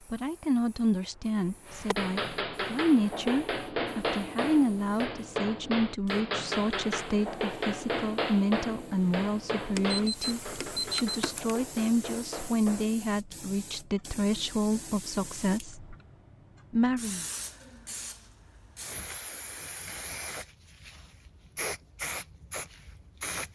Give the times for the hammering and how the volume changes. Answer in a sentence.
The hammering can be heard from 1.6 to 13.1 s, getting quieter.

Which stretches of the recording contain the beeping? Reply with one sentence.
The beeping can be heard from 9.8 to 11.6 s.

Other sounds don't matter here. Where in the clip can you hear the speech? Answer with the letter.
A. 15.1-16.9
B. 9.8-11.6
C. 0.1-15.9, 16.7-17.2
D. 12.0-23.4
C.